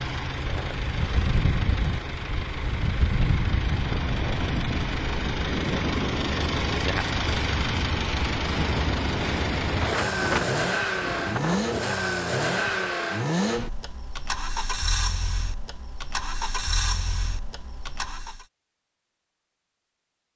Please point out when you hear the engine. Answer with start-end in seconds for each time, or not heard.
0.0-18.4.